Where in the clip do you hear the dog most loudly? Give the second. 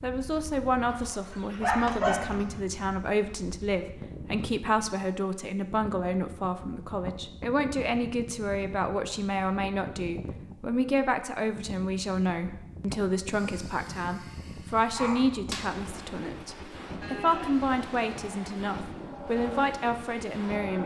2 s.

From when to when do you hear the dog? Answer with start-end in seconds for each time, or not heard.
0.9-2.5, 13.3-15.7.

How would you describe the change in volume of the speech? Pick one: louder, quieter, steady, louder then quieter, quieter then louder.
steady.